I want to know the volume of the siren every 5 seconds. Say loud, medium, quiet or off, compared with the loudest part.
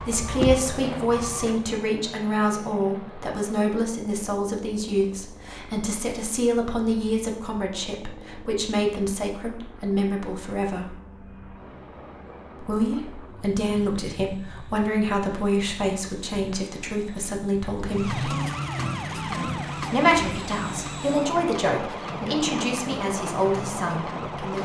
loud, off, off, loud, medium.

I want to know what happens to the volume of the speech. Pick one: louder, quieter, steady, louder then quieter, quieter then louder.
steady.